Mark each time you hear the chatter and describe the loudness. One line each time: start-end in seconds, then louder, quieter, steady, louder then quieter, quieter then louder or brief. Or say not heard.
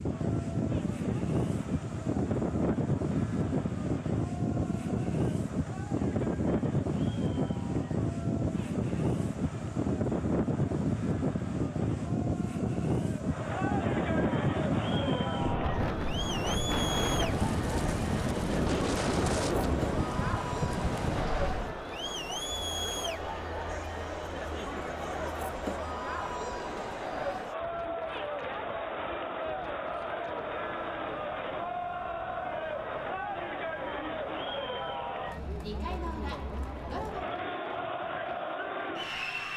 0.0-39.5 louder.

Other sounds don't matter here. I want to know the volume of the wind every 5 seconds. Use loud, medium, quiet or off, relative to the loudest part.
loud, loud, loud, loud, medium, quiet, quiet, quiet.